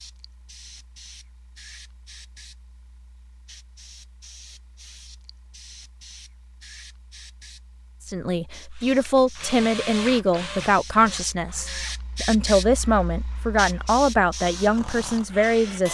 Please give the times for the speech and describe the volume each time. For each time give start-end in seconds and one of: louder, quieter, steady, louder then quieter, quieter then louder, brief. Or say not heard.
8.1-15.9 steady.